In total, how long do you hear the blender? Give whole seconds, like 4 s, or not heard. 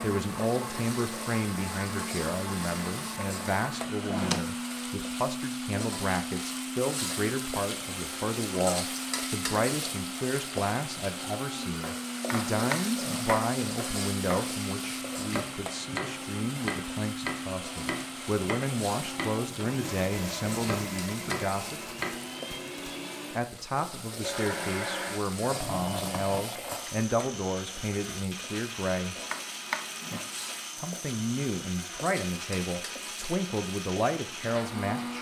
35 s.